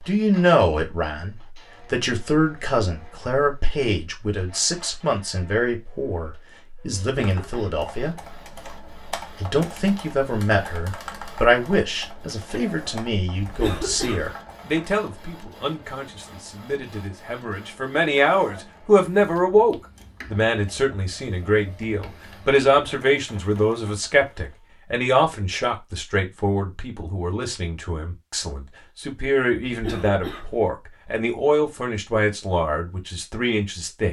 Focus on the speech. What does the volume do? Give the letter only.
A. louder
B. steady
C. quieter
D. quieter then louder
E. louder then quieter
B.